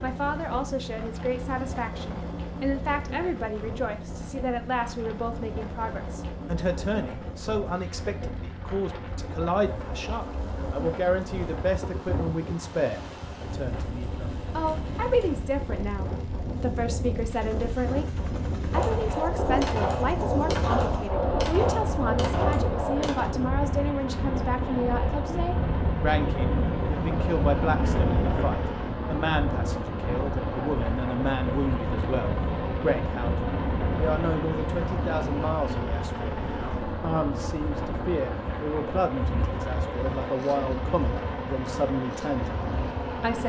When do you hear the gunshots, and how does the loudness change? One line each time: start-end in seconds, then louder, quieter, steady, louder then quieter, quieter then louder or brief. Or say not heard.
18.7-23.4 steady.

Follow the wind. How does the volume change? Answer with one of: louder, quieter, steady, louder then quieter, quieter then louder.
louder then quieter.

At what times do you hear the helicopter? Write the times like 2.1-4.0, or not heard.
0.0-43.4.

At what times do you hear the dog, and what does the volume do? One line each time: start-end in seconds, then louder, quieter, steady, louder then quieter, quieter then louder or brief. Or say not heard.
not heard.